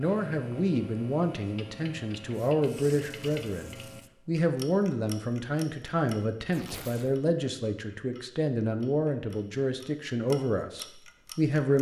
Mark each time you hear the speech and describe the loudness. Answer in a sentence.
The speech can be heard from 0.0 to 11.7 s, at a steady volume.